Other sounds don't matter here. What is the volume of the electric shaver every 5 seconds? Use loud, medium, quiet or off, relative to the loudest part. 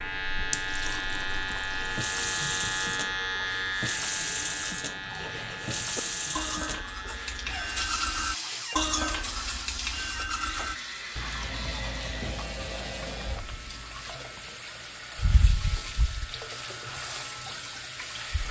loud, medium, medium, medium.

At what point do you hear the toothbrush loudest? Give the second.
9 s.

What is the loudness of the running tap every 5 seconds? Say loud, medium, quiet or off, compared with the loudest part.
loud, loud, medium, loud.